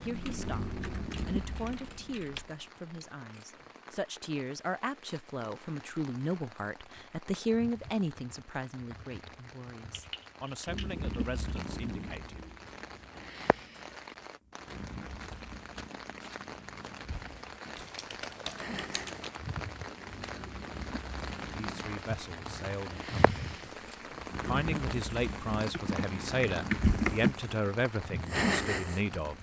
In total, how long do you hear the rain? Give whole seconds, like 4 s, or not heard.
29 s.